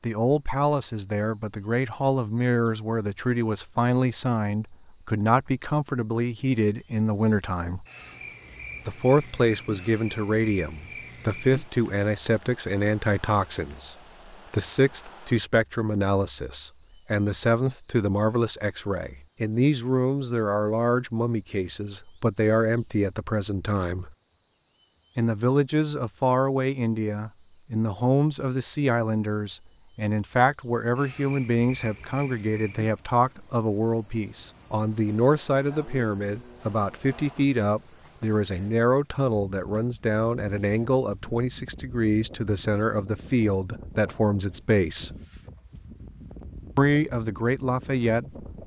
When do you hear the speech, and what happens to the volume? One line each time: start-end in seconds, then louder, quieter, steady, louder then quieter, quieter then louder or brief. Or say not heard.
0.0-7.8 steady
8.8-24.1 steady
25.1-45.1 steady
46.8-48.5 brief.